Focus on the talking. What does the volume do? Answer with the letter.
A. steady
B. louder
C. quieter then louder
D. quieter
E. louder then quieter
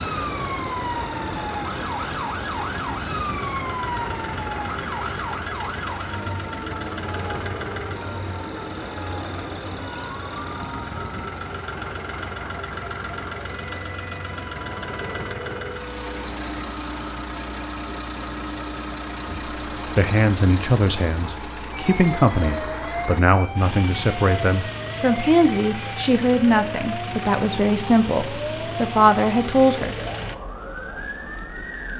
A.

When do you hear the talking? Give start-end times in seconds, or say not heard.
19.2-29.9.